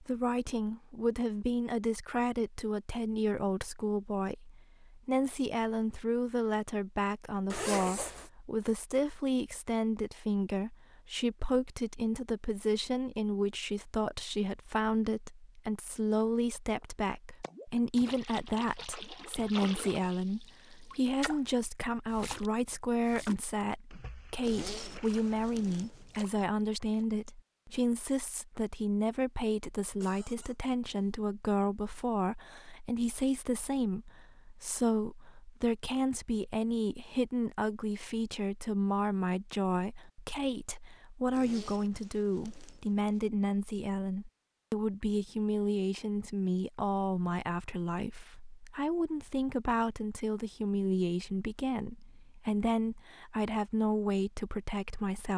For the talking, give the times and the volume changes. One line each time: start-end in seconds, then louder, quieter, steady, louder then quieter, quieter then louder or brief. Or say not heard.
0.0-55.3 steady.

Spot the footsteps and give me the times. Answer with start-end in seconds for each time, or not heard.
not heard.